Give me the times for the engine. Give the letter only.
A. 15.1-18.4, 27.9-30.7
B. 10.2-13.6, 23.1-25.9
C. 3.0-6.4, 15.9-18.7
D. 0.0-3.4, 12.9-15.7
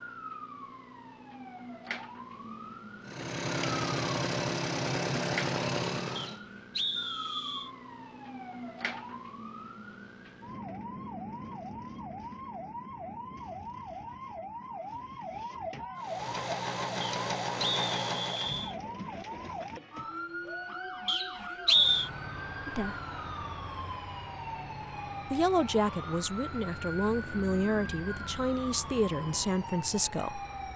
C.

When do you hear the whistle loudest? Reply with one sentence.
The volume of the whistle peaks at 22 seconds.